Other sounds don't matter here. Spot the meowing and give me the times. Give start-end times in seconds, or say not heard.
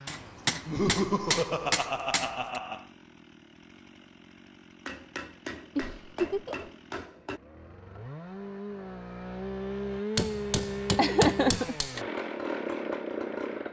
not heard.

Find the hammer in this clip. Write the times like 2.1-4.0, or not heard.
0.1-2.6, 4.8-7.4, 10.2-12.0.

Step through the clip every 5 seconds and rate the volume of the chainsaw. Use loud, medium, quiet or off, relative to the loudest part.
quiet, medium, loud.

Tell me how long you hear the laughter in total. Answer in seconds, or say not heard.
4 s.